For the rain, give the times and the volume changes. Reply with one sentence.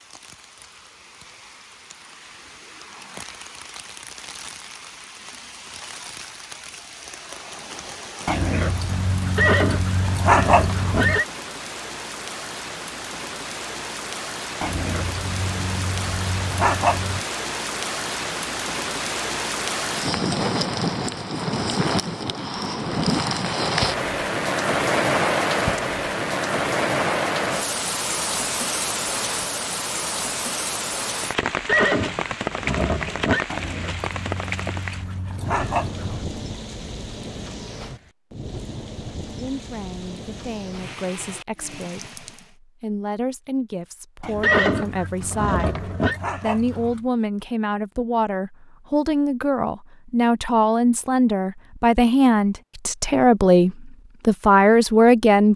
You can hear the rain from 0.0 to 42.5 s, getting louder then quieter.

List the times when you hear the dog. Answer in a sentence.
The dog can be heard from 8.2 to 11.2 s, from 14.6 to 17.2 s, from 33.5 to 36.2 s and from 44.2 to 47.0 s.